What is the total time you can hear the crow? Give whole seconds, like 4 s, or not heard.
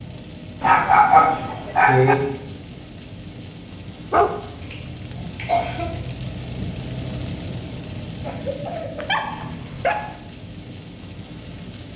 not heard.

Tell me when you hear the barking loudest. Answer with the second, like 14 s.
1 s.